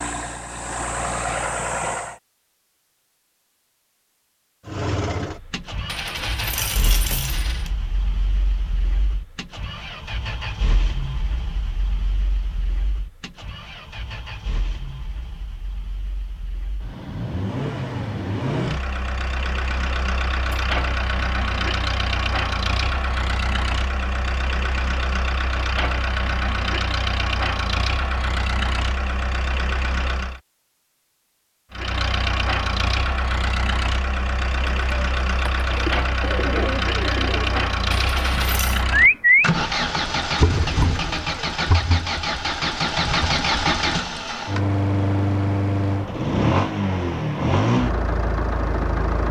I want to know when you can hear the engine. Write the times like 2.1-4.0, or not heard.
0.0-2.2, 4.7-30.4, 31.7-49.2.